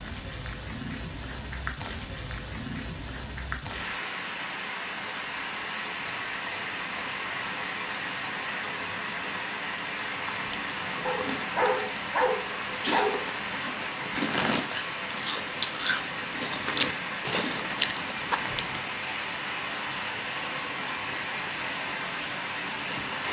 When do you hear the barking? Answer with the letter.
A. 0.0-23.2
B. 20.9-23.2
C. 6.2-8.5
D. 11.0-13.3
D.